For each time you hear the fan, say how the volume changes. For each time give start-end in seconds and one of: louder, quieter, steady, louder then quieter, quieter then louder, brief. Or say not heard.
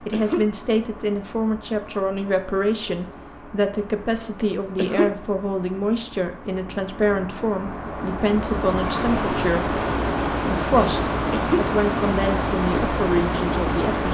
0.0-14.0 louder.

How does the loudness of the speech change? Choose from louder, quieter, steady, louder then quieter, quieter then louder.
steady.